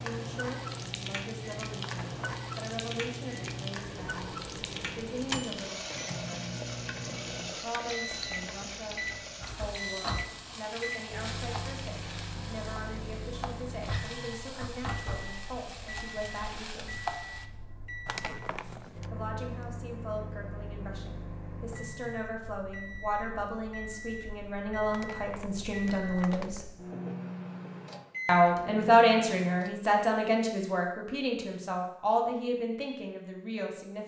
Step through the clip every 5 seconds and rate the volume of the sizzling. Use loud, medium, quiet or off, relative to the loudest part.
loud, loud, loud, loud, off, off, off.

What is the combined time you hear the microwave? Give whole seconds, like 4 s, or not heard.
30 s.